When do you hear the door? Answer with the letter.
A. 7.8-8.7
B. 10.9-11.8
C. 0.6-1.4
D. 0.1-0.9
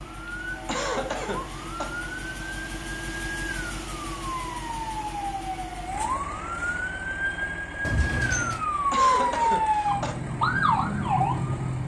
A.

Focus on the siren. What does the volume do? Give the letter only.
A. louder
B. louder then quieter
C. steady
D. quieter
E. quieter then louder
A.